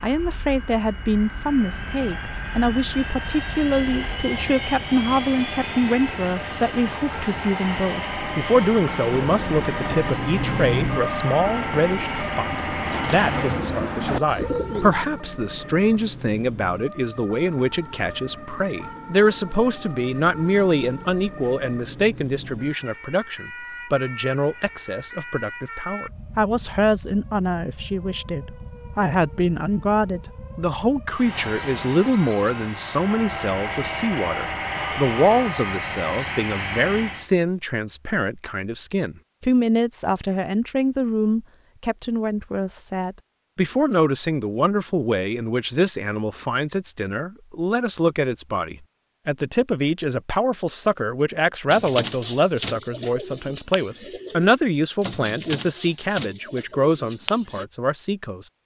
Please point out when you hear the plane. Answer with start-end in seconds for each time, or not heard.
0.0-13.7, 31.1-37.3.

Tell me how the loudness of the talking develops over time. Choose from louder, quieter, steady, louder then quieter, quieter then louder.
steady.